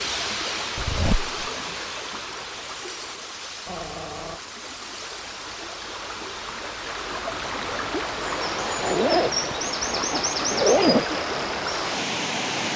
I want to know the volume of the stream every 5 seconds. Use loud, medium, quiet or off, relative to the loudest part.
medium, loud, loud.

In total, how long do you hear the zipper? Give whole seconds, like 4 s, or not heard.
3 s.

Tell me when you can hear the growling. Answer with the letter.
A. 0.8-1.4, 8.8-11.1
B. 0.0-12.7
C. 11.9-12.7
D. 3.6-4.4
D.